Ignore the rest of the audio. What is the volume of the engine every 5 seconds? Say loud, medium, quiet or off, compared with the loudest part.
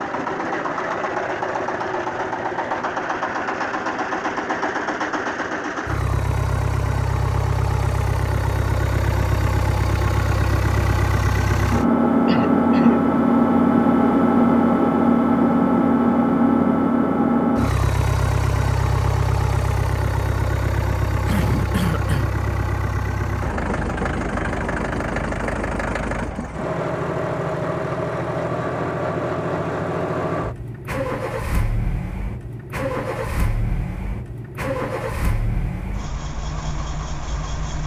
medium, medium, loud, loud, medium, medium, medium, quiet.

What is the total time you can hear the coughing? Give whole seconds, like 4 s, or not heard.
2 s.